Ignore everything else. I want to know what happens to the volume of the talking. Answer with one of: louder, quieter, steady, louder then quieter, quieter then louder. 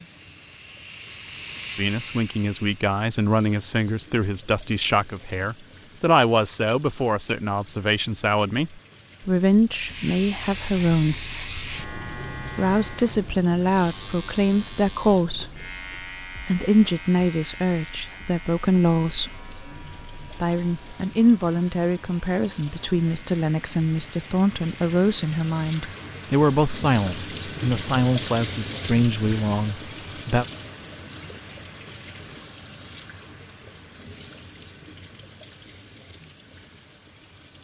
steady.